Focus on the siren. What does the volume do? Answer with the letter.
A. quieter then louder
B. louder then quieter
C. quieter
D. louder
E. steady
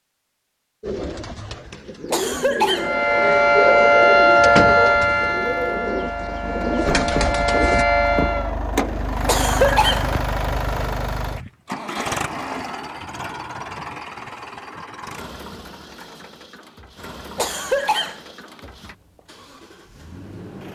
A.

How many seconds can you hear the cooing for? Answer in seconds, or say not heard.
7 s.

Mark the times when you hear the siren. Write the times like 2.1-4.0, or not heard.
2.8-8.6.